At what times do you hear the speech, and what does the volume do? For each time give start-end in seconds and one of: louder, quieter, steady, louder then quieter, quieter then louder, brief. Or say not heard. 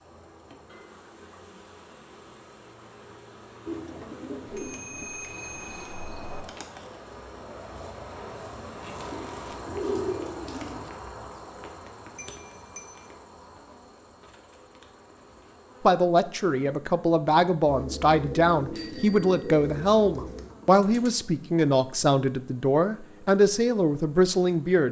15.8-24.8 steady.